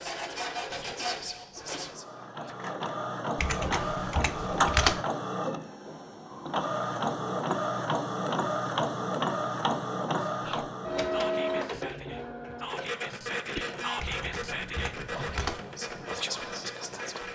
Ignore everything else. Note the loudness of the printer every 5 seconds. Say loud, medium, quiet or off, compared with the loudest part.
loud, loud, loud, medium.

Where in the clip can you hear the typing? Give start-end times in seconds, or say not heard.
3.4-5.0, 13.9-15.7.